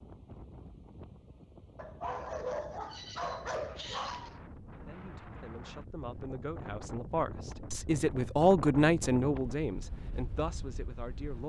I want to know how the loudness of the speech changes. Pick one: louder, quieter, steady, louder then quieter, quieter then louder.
louder then quieter.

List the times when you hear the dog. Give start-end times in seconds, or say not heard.
1.8-4.3.